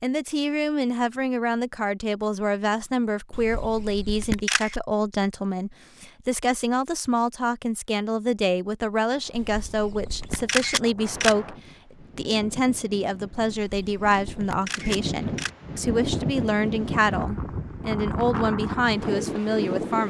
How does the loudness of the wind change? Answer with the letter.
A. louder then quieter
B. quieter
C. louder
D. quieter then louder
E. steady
C.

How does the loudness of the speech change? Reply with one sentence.
The volume of the speech stays about the same.